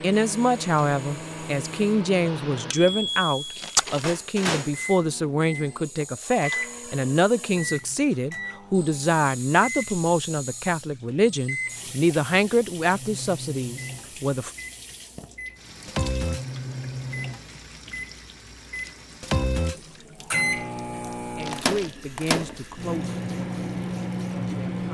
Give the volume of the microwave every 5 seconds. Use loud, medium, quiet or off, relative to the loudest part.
loud, medium, medium, loud, loud.